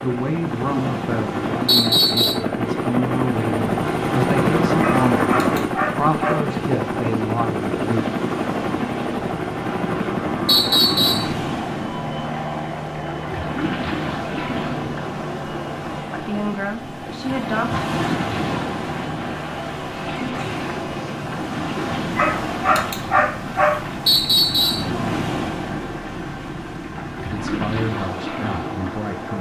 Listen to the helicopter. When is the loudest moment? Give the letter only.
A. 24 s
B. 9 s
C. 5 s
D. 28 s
C.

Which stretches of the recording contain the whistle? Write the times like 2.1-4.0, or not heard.
1.6-2.4, 10.4-11.3, 24.1-24.9.